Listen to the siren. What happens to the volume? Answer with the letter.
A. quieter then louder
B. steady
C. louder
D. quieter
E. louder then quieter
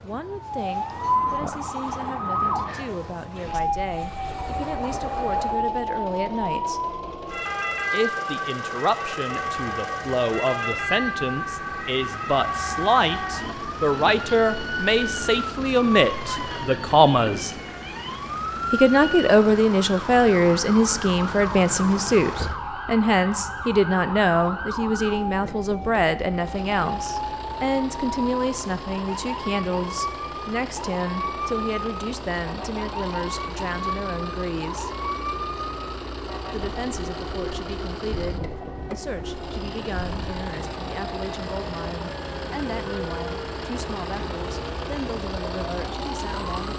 D.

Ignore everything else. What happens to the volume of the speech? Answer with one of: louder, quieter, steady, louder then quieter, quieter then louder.
louder then quieter.